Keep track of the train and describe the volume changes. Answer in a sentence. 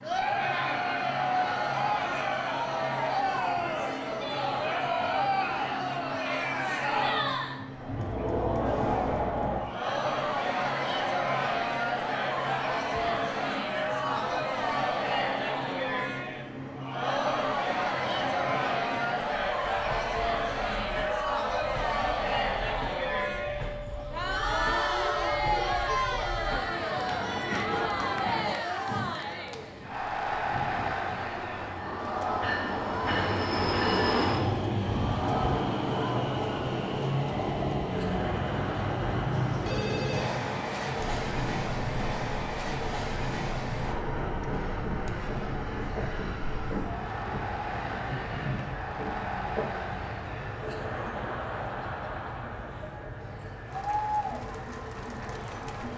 The volume of the train goes up, then down.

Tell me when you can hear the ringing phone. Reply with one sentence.
The ringing phone can be heard from 8.7 to 9.2 s and from 39.3 to 40.5 s.